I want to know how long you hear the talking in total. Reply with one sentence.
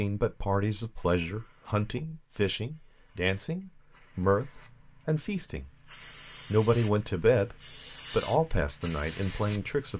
The talking can be heard for 9 seconds in total.